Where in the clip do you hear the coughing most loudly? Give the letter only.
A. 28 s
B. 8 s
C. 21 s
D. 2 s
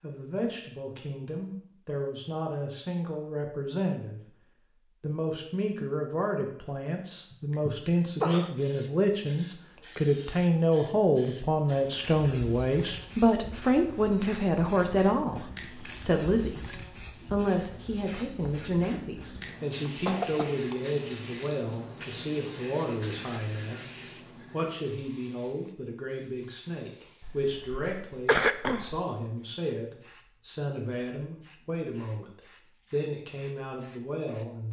A.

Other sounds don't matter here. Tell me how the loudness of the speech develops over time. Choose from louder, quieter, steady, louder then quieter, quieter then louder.
louder then quieter.